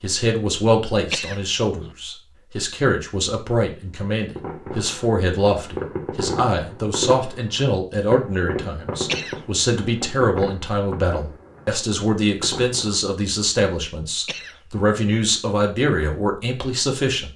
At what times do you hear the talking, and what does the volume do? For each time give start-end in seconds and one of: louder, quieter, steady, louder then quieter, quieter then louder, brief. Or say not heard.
0.0-17.3 steady.